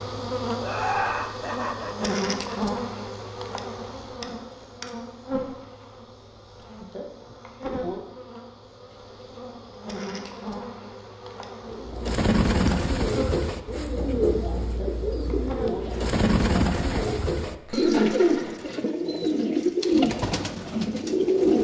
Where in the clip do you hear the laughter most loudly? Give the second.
1 s.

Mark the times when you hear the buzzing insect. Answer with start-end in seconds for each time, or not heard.
0.0-16.1.